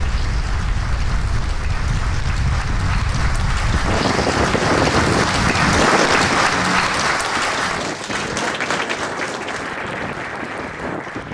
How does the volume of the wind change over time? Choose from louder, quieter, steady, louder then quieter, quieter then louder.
louder then quieter.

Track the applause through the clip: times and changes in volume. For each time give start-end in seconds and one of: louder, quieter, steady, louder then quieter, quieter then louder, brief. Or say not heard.
0.0-11.2 louder then quieter.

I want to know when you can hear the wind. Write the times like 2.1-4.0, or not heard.
0.0-11.2.